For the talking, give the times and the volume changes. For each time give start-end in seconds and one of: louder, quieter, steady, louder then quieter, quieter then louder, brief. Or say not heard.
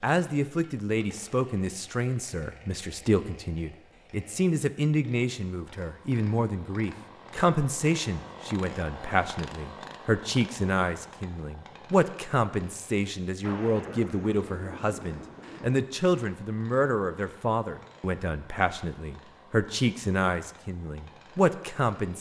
0.0-22.1 steady.